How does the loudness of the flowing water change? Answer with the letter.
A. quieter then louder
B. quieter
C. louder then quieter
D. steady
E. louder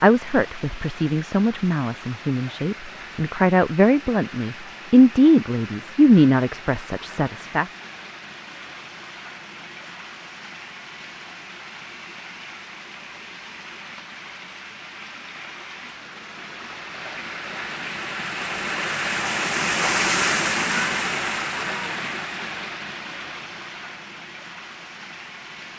E.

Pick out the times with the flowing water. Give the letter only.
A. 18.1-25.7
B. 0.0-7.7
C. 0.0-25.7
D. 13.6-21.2
C.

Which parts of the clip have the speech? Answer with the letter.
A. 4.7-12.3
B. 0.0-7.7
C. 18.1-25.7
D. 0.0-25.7
B.